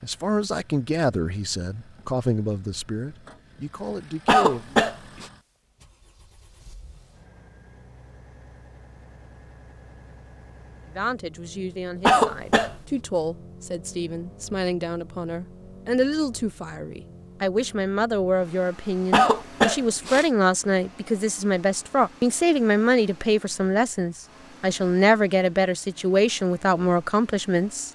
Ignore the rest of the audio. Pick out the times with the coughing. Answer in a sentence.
You can hear the coughing from 4.2 to 5.2 s, from 12.1 to 12.8 s and from 19.1 to 20.2 s.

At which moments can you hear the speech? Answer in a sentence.
The speech can be heard from 0.0 to 4.8 s and from 10.9 to 27.8 s.